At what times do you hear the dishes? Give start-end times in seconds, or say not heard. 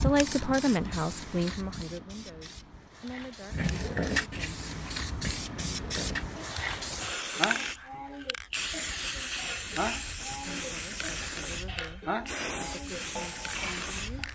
3.5-14.3.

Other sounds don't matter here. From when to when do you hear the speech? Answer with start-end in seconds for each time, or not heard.
0.0-4.6, 10.4-14.3.